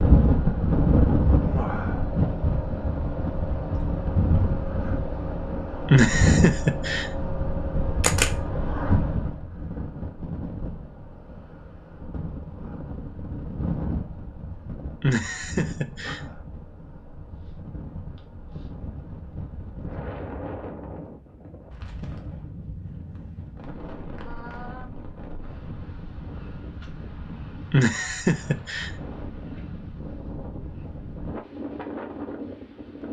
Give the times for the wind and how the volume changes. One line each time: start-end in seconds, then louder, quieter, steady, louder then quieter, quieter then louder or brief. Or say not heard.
0.0-33.0 quieter.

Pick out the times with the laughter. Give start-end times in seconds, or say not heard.
5.9-7.1, 15.0-16.2, 27.7-28.9.